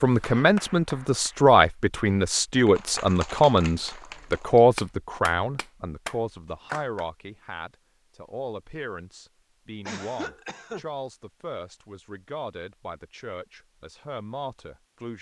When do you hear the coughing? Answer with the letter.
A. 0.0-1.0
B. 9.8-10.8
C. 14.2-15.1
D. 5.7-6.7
B.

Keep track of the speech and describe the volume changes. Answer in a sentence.
The loudness of the speech goes down.